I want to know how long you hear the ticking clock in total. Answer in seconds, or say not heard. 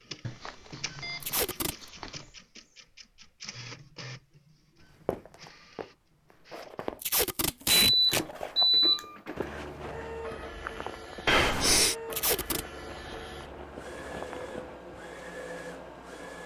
not heard.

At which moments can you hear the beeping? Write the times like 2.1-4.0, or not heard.
0.2-2.2, 7.8-9.1, 11.2-11.9.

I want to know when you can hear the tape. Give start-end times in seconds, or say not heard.
1.2-1.8, 7.0-8.2, 12.1-12.7.